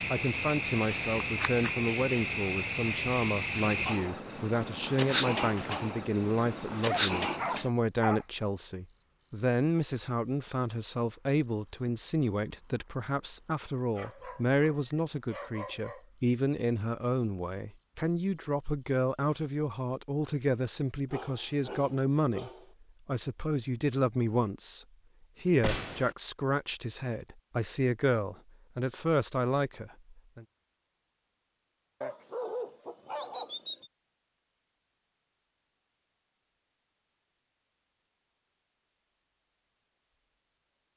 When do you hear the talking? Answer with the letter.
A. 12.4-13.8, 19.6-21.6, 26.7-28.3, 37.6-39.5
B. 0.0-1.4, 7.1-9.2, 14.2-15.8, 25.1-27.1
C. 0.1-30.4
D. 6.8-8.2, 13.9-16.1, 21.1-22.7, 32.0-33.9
C.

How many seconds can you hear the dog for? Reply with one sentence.
The dog can be heard for 7 seconds in total.